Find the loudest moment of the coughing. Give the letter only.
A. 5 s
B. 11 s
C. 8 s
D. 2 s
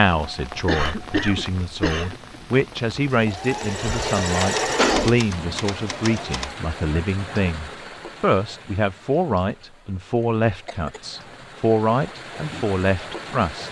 A.